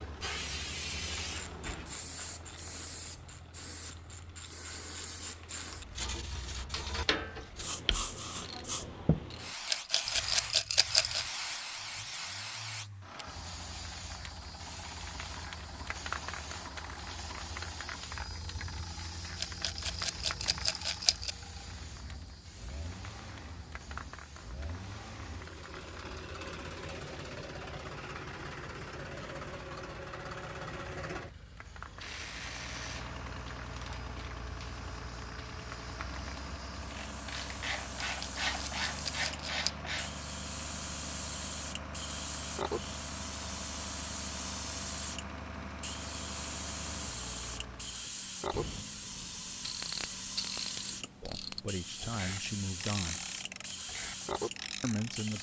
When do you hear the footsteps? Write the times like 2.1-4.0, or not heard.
not heard.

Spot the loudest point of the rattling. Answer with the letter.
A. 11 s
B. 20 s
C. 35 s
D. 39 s
A.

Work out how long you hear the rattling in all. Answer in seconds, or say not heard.
5 s.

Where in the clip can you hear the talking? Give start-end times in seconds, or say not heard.
51.2-53.2, 54.8-55.3.